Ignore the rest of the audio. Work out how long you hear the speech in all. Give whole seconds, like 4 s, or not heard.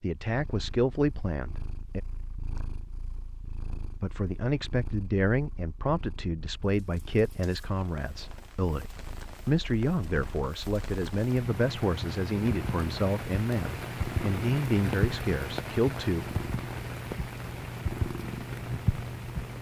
14 s.